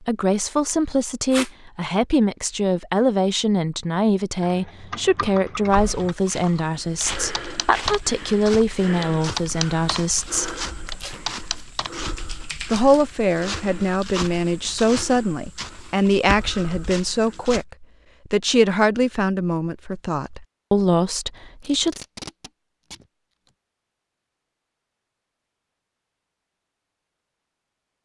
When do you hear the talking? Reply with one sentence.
You can hear the talking from 0.0 to 10.6 s and from 12.7 to 22.0 s.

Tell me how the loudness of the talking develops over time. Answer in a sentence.
The loudness of the talking stays about the same.